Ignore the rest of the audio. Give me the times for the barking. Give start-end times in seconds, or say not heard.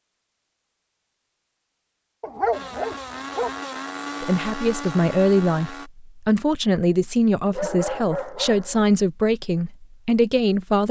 2.2-3.5, 7.5-8.8.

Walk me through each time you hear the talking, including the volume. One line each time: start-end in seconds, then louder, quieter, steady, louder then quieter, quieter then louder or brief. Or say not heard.
4.2-10.8 steady.